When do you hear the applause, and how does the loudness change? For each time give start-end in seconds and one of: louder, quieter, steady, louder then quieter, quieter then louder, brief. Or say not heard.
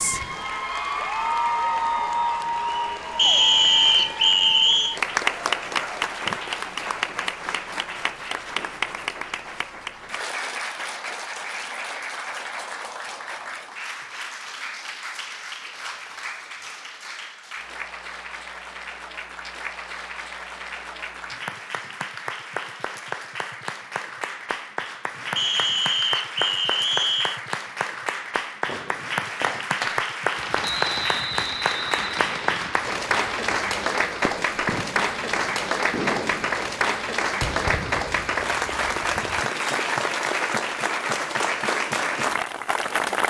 0.0-43.2 quieter then louder.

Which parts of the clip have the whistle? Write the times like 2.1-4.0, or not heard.
3.1-5.0, 25.4-27.4, 30.6-32.6.